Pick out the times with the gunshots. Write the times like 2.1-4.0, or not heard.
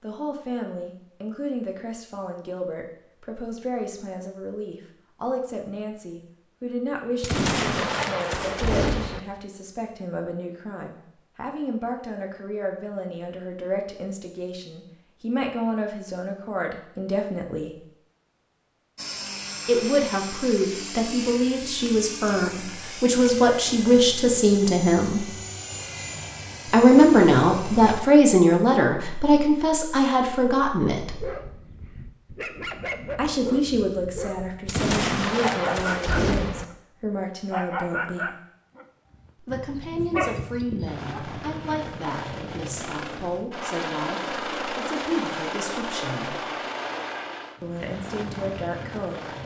7.2-9.2, 34.6-36.6.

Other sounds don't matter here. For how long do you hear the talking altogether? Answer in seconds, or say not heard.
42 s.